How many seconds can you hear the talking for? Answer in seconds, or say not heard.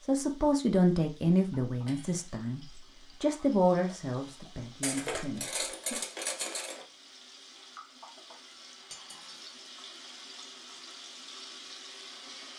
6 s.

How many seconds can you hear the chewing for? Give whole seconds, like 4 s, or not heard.
not heard.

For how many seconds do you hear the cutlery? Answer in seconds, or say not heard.
3 s.